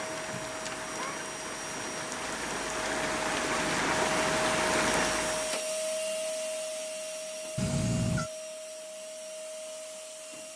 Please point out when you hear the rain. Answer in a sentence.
You can hear the rain from 0.0 to 5.6 s.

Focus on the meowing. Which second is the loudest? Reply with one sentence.
The volume of the meowing peaks at 8 seconds.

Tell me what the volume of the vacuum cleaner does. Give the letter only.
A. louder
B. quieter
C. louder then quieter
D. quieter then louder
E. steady
C.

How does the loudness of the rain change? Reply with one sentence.
The volume of the rain goes up.